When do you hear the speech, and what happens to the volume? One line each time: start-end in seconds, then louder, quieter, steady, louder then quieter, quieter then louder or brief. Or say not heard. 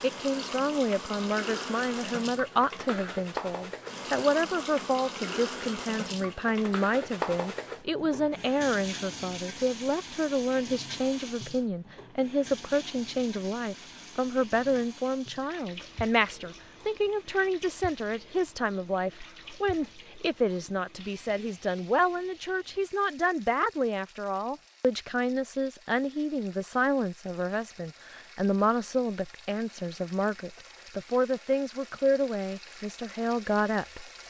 0.0-34.1 steady.